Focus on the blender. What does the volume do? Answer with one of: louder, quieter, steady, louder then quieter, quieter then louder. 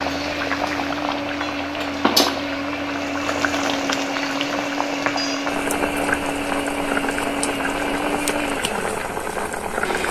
steady.